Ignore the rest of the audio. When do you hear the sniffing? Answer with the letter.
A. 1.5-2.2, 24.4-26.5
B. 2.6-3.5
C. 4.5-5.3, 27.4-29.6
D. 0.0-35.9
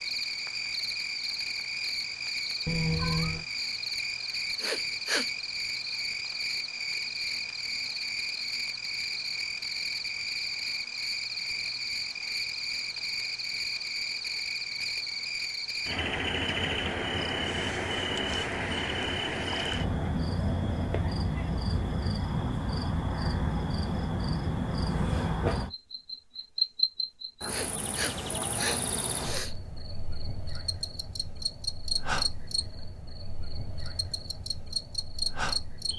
C.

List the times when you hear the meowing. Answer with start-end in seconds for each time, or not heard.
2.6-3.5.